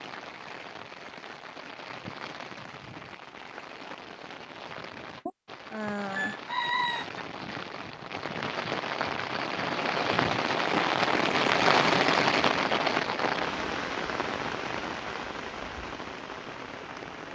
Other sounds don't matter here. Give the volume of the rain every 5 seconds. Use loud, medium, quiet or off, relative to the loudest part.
quiet, medium, loud, quiet.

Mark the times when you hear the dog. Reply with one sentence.
The dog can't be heard in this clip.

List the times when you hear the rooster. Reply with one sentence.
You can hear the rooster from 5.2 to 7.2 s.